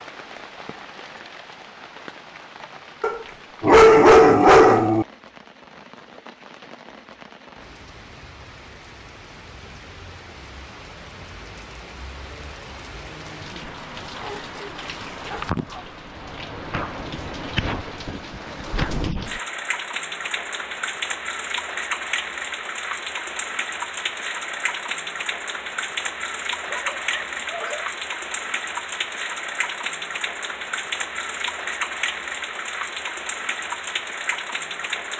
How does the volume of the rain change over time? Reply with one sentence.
The loudness of the rain goes up.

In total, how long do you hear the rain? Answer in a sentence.
You can hear the rain for 35 seconds altogether.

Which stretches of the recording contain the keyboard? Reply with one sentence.
You can't hear the keyboard here.